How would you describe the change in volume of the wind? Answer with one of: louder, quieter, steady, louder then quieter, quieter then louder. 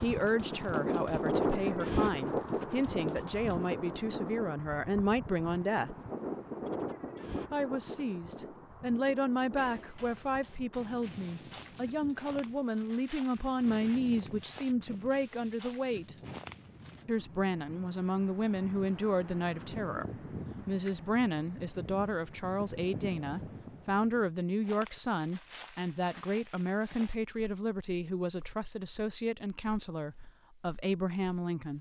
quieter then louder.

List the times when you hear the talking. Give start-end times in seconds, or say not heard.
0.0-6.0, 7.5-16.1, 17.1-31.7.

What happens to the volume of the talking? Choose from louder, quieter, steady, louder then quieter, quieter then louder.
steady.